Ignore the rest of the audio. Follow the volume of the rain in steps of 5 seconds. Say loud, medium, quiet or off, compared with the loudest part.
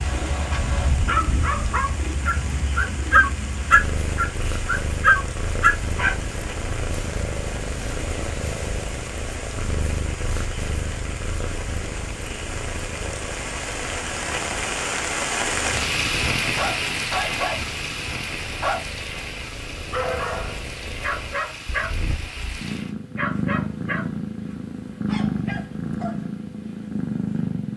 medium, medium, medium, loud, medium, off.